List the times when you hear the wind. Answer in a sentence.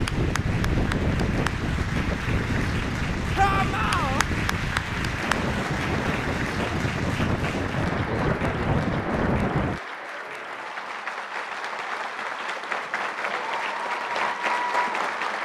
You can hear the wind from 0.0 to 9.8 s.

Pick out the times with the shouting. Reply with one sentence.
The shouting can be heard from 3.4 to 4.2 s.